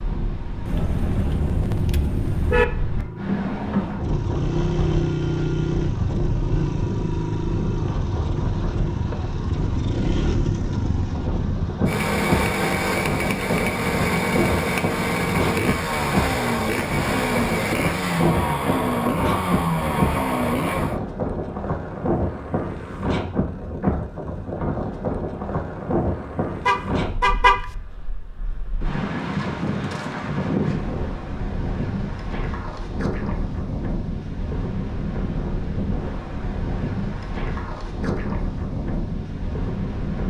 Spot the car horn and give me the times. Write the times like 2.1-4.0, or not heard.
0.7-2.6, 26.6-27.6.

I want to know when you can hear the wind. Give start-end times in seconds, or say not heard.
0.0-40.2.